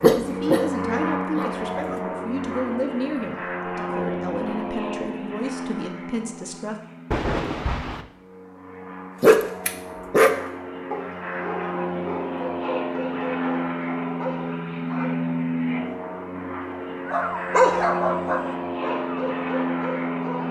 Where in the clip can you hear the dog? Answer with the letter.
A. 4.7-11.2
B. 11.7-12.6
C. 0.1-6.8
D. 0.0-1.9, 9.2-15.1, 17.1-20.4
D.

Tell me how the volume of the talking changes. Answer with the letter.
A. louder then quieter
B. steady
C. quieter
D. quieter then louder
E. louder
B.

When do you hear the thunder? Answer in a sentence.
The thunder can be heard from 7.1 to 8.1 s.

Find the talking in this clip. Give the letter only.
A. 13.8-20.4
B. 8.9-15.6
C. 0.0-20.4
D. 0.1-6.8
D.